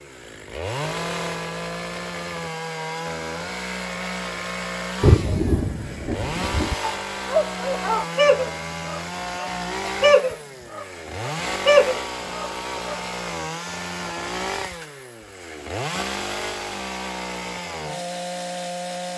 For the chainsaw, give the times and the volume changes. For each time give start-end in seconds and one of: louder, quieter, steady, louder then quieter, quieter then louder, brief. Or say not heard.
0.0-19.1 steady.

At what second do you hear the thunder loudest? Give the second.
5 s.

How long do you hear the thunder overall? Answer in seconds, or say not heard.
2 s.